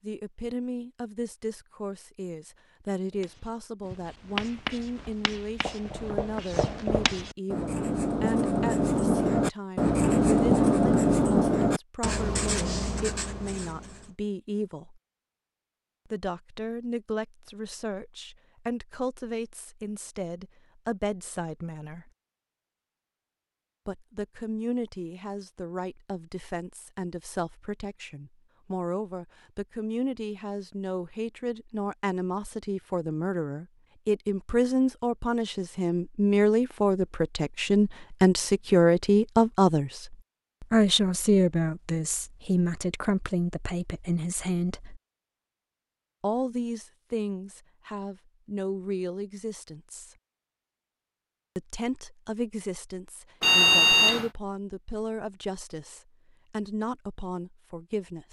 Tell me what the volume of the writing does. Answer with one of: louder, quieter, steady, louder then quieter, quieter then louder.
louder then quieter.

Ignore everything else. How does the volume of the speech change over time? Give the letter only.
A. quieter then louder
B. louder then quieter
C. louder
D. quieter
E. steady
B.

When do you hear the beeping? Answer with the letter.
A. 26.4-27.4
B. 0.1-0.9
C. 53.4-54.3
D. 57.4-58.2
C.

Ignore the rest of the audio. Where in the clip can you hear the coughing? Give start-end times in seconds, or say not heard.
not heard.